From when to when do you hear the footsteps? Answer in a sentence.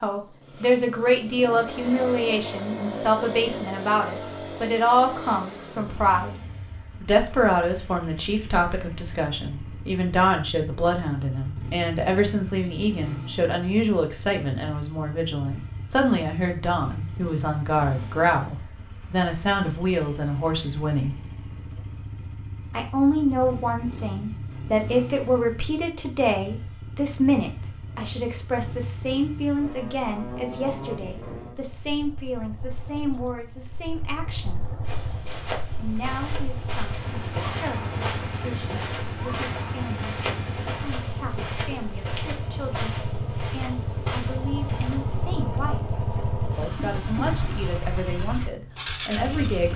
You can hear the footsteps from 34.9 to 45.2 s.